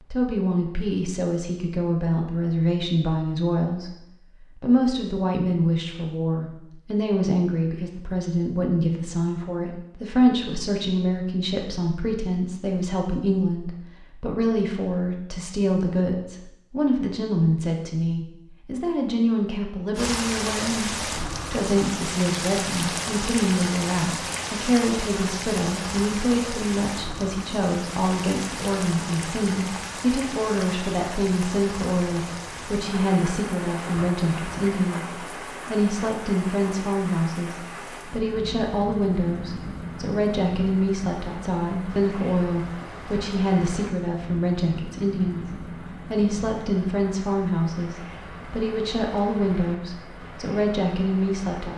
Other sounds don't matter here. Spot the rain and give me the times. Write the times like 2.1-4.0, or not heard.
19.9-51.7.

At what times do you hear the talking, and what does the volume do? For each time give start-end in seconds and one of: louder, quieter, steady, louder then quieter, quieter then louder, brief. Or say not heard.
0.1-51.7 steady.